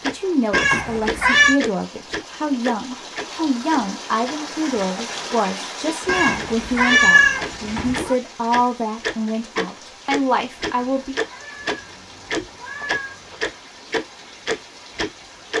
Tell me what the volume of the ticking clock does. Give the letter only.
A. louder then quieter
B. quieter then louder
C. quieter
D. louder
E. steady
B.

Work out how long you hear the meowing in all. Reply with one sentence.
The meowing can be heard for 6 seconds in total.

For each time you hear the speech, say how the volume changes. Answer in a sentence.
You can hear the speech from 0.0 to 11.2 s, at a steady volume.